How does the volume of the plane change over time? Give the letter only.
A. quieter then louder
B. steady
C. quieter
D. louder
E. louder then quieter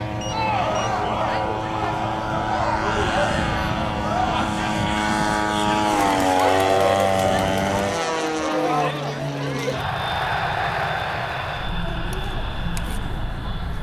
E.